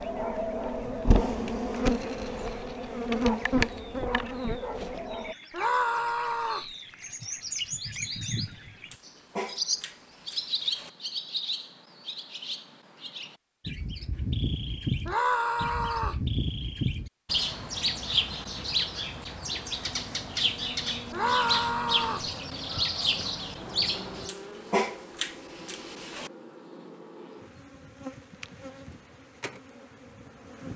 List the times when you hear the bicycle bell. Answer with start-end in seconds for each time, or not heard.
not heard.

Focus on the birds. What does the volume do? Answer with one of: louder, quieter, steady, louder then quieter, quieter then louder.
louder.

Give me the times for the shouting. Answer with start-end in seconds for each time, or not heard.
5.5-6.7, 15.1-16.2, 21.1-22.3.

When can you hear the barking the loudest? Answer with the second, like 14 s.
25 s.